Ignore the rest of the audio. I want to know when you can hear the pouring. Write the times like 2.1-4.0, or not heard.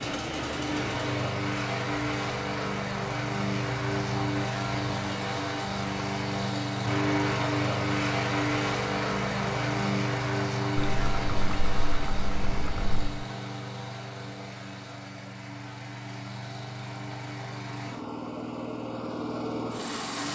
10.8-13.2.